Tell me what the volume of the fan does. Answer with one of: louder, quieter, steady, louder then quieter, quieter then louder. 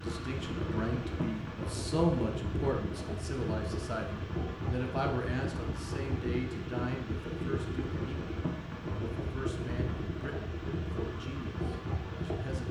steady.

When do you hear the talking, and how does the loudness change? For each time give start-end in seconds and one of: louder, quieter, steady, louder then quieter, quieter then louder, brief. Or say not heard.
0.0-12.6 quieter.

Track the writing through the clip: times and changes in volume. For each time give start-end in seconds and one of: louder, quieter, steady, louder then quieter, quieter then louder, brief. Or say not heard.
not heard.